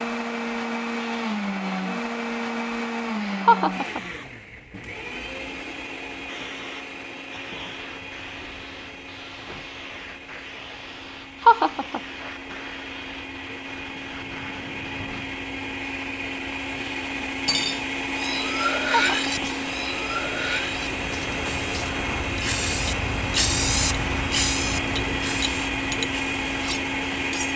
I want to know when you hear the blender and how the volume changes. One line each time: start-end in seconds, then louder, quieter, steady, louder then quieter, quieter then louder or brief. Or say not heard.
0.0-27.5 quieter then louder.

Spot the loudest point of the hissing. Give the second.
24 s.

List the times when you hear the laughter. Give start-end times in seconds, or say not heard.
3.5-4.0, 11.4-12.0, 18.9-19.4.